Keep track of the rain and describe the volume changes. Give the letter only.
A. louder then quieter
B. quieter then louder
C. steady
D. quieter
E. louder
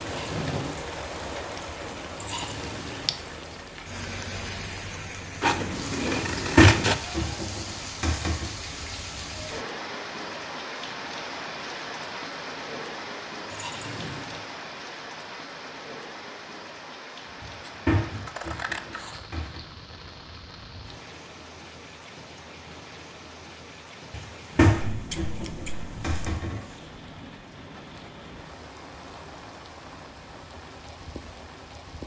D.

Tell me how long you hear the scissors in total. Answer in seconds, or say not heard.
5 s.